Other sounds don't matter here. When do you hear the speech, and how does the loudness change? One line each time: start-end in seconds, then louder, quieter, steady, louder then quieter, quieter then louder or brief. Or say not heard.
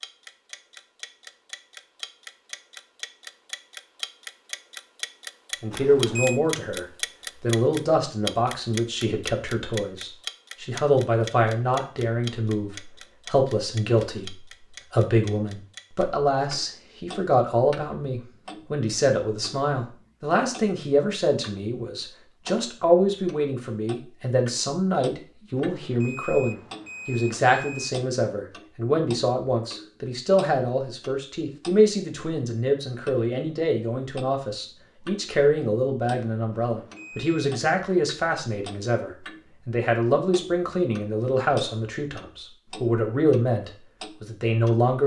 5.6-45.0 steady.